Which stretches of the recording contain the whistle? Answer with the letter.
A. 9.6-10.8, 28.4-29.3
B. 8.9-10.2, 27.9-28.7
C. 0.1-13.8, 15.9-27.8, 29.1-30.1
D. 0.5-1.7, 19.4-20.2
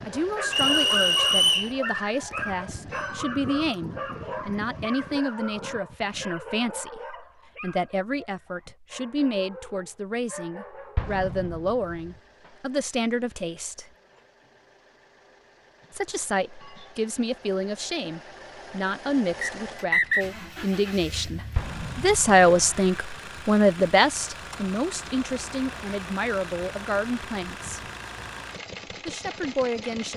D.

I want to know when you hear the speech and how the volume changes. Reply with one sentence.
You can hear the speech from 0.1 to 13.8 s, at a steady volume; from 15.9 to 27.8 s, getting louder then quieter; and briefly from 29.1 to 30.1 s.